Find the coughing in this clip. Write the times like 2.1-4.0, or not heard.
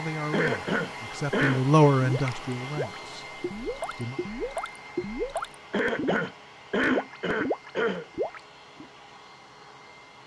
0.3-1.6, 5.7-8.1.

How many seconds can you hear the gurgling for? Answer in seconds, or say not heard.
7 s.